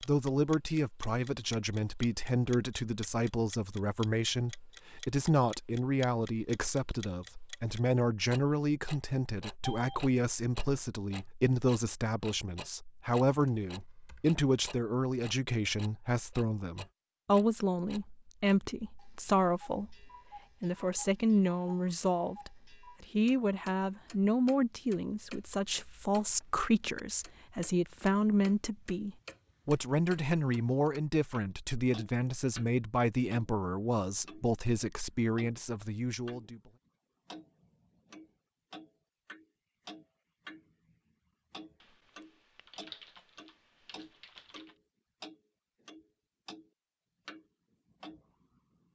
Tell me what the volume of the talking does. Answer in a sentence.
The loudness of the talking stays about the same.